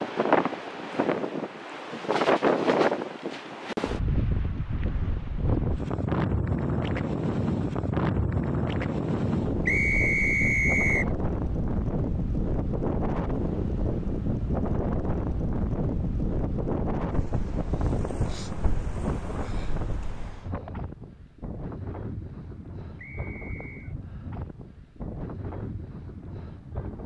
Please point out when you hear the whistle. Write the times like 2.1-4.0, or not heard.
9.7-11.1, 22.9-23.9.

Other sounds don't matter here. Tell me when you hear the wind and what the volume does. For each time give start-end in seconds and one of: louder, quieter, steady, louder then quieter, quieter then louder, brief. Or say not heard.
0.0-27.0 quieter.